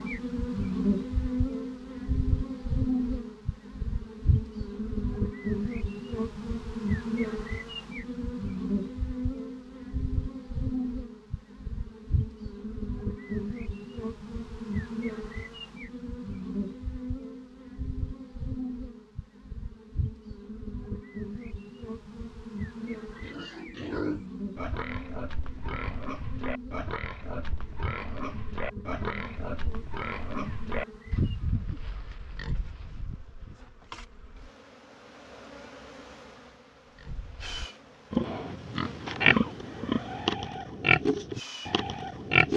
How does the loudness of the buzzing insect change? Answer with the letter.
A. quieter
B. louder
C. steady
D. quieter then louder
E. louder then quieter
A.